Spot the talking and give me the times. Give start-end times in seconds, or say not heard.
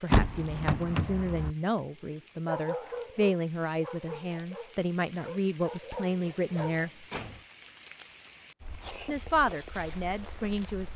0.0-7.0, 9.1-10.9.